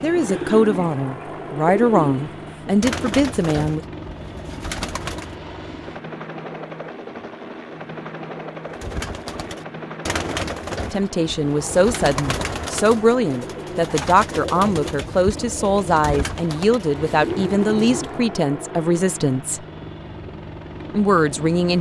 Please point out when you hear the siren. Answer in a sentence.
The siren can't be heard in this clip.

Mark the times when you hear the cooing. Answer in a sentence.
You can hear the cooing from 0.0 to 5.3 s and from 8.7 to 18.4 s.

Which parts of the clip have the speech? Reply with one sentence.
The speech can be heard from 0.0 to 3.8 s, from 10.9 to 19.6 s and from 20.9 to 21.7 s.